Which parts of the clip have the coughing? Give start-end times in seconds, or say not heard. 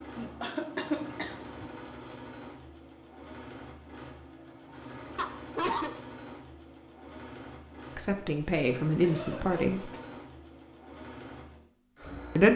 0.1-1.7, 5.2-6.0, 9.0-10.2.